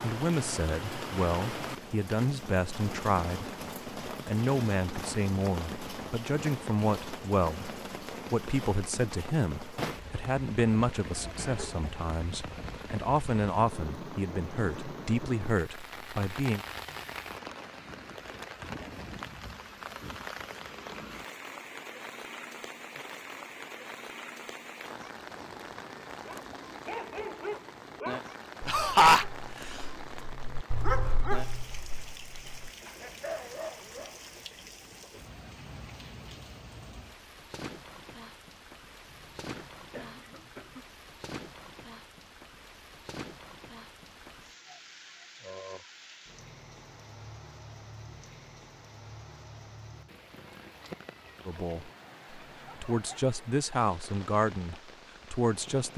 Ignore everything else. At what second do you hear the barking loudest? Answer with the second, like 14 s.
31 s.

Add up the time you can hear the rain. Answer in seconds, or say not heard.
56 s.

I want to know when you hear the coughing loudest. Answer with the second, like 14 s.
29 s.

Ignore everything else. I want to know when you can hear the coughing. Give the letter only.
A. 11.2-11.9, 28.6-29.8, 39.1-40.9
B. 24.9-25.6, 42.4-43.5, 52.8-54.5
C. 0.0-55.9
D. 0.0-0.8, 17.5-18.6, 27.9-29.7
A.